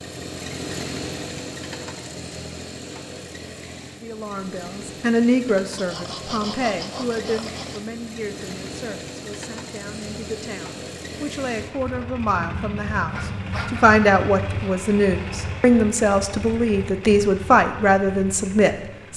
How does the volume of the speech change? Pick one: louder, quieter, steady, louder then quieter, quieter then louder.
quieter then louder.